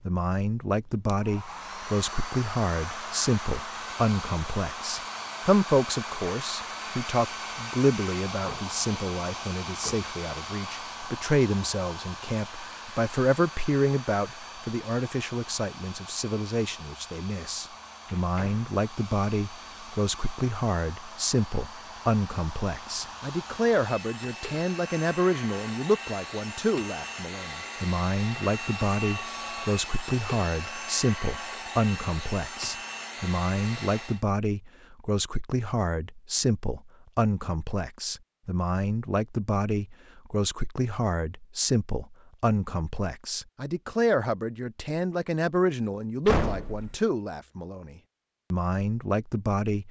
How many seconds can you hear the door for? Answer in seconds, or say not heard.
3 s.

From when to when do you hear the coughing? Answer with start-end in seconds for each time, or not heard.
not heard.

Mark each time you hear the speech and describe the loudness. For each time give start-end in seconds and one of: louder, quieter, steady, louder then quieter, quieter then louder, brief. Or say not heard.
0.1-49.8 steady.